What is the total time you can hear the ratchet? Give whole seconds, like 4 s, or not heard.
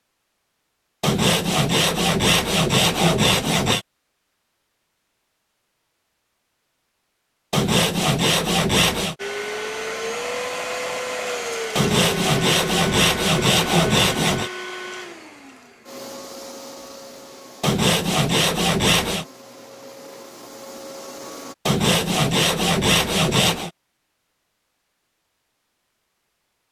not heard.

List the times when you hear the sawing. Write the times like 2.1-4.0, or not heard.
1.0-3.9, 7.5-9.2, 11.8-14.5, 17.6-19.2, 21.6-23.7.